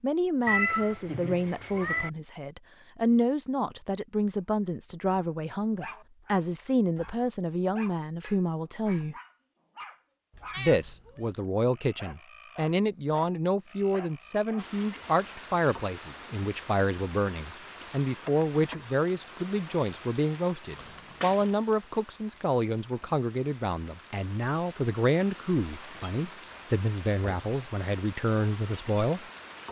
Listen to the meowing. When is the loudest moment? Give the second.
1 s.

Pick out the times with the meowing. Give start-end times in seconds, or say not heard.
0.5-2.1, 10.3-11.4, 20.8-21.5.